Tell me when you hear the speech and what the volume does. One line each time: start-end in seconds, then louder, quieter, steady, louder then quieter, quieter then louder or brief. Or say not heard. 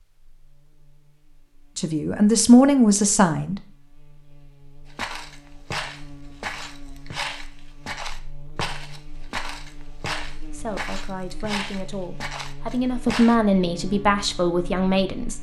1.8-3.5 brief
10.5-15.3 louder.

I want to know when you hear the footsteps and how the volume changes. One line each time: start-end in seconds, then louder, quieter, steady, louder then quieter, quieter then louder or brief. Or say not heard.
4.9-13.3 steady.